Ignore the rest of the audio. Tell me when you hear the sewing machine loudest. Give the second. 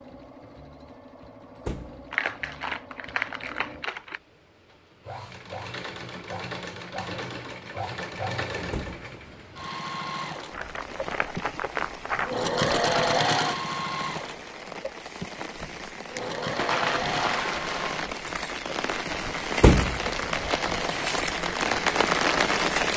13 s.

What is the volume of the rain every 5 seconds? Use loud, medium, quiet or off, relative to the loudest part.
off, off, quiet, medium, loud.